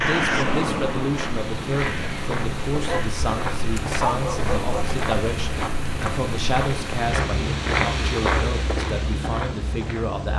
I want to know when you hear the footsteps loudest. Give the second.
8 s.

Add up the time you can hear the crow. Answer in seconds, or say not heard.
3 s.